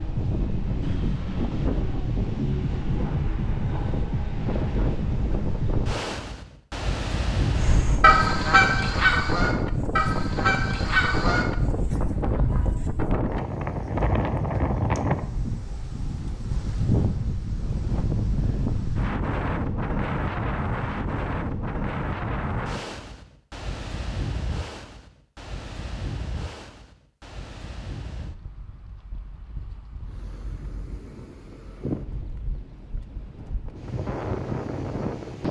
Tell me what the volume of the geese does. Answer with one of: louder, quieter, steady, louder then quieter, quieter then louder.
quieter.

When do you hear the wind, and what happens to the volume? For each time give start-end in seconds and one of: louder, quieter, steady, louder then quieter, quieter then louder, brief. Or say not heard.
0.0-35.4 quieter.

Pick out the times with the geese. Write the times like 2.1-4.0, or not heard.
7.5-12.8.